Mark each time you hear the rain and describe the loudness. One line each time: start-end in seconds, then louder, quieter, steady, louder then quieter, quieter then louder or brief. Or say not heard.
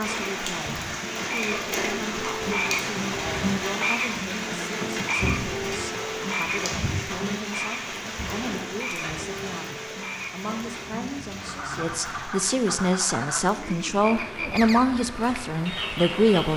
0.0-16.5 quieter.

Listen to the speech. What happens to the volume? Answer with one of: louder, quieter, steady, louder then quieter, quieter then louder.
louder.